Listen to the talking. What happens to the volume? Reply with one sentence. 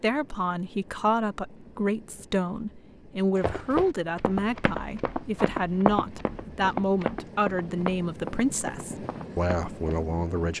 The loudness of the talking stays about the same.